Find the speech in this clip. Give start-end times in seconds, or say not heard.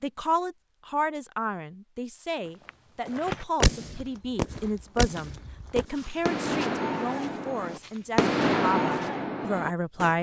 0.0-10.1.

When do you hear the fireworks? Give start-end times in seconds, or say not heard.
3.1-10.1.